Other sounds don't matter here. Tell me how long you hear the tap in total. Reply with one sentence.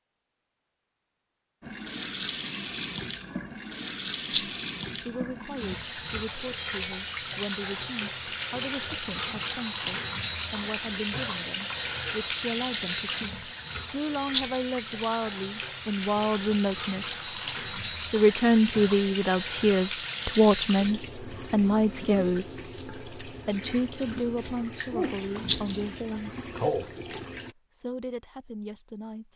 The tap can be heard for 26 seconds in total.